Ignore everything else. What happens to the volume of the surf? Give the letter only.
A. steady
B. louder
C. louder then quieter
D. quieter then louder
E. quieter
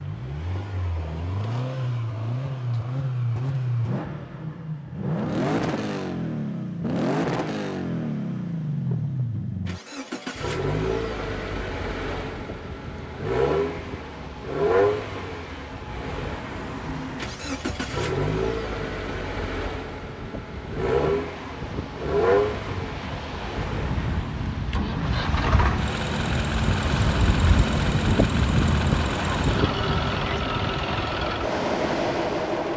B.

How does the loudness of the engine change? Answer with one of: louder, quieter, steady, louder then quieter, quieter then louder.
steady.